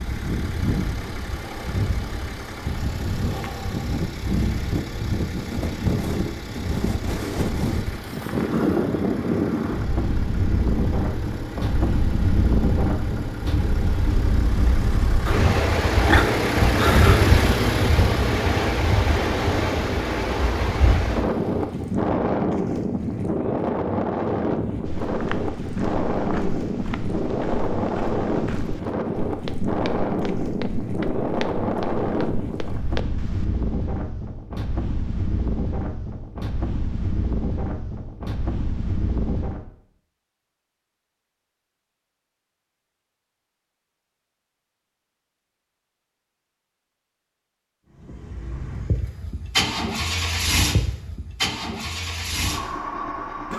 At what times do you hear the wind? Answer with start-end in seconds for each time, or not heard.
0.0-39.6.